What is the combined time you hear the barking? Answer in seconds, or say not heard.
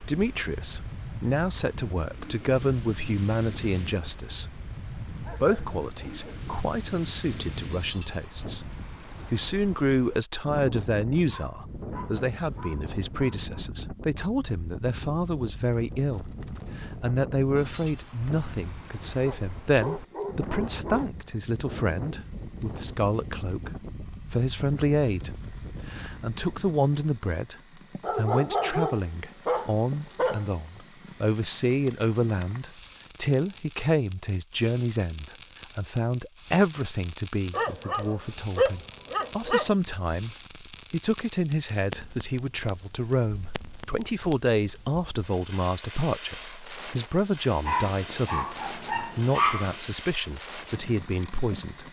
12 s.